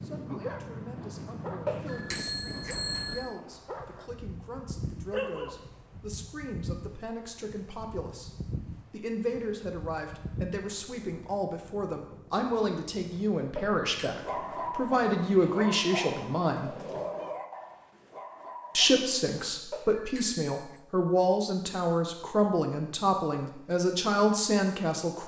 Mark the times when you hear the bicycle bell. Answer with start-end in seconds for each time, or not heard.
1.6-3.4, 13.6-14.2, 19.7-20.8.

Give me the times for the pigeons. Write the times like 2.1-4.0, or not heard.
not heard.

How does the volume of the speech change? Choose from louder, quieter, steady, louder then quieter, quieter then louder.
louder.